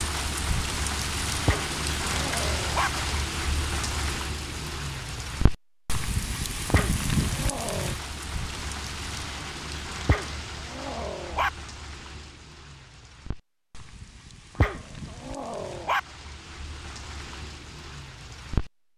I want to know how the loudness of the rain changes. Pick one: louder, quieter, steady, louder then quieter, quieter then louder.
quieter.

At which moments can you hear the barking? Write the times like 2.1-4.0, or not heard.
1.4-2.9, 6.7-8.0, 10.1-11.5, 14.6-16.0.